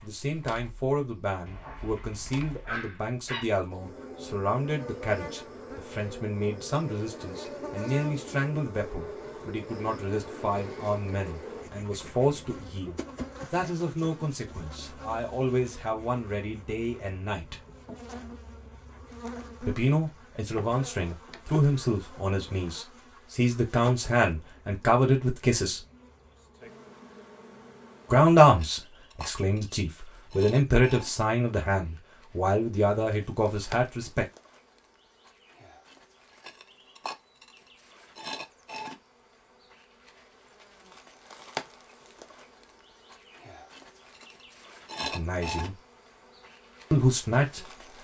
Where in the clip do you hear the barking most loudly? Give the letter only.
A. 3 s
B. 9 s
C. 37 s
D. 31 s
A.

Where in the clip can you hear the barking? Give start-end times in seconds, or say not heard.
1.4-3.5.